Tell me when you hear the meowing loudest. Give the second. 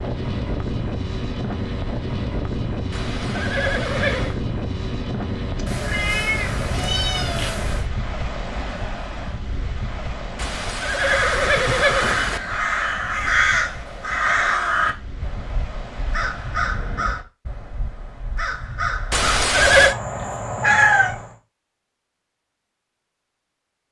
21 s.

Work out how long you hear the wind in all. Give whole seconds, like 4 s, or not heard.
17 s.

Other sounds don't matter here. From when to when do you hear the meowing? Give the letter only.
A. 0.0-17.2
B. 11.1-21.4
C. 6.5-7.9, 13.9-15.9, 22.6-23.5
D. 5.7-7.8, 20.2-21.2
D.